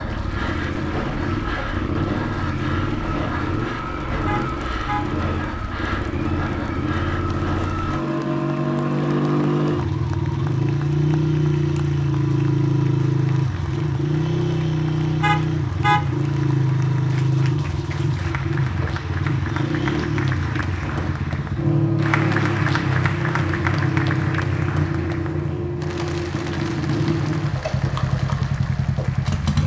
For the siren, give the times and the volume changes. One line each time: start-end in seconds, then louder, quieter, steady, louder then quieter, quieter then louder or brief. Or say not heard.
not heard.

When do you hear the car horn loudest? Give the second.
16 s.